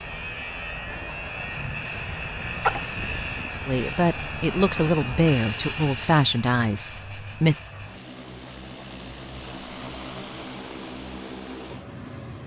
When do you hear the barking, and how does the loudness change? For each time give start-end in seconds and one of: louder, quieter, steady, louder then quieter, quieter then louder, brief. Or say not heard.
not heard.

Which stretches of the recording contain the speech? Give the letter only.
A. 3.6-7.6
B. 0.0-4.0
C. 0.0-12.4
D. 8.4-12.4
A.